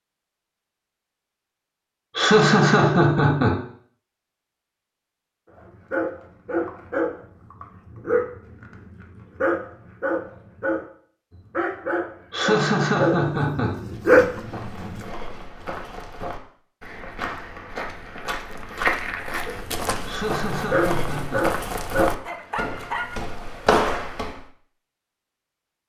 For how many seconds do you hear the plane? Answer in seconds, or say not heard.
not heard.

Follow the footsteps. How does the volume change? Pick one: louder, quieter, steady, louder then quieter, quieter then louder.
louder.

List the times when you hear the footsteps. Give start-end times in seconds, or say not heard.
13.9-24.5.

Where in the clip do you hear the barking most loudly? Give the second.
14 s.